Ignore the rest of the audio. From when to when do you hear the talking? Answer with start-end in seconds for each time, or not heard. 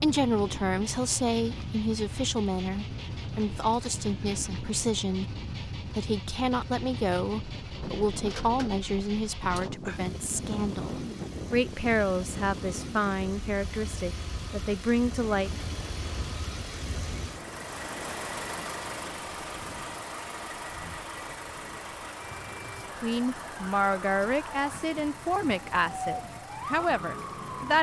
0.0-15.5, 23.0-27.7.